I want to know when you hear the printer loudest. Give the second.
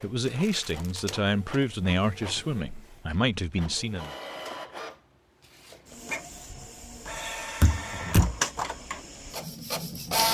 10 s.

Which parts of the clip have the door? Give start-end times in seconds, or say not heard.
7.6-8.3.